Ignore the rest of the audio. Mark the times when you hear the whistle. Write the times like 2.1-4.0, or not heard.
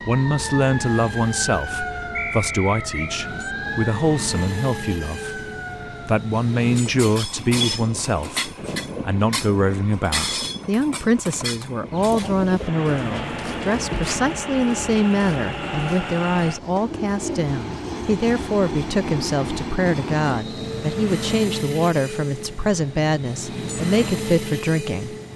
2.1-3.1.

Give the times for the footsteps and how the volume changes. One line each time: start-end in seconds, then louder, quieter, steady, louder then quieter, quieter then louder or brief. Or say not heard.
not heard.